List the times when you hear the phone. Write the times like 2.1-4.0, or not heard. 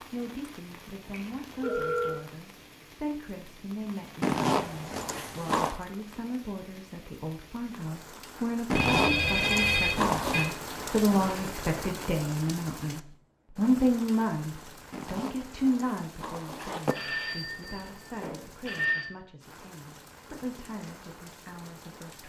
1.1-2.2, 8.8-10.5, 16.9-19.1.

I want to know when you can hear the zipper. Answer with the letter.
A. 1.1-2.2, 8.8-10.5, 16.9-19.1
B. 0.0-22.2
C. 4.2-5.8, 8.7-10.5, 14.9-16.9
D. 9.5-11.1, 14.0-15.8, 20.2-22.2
C.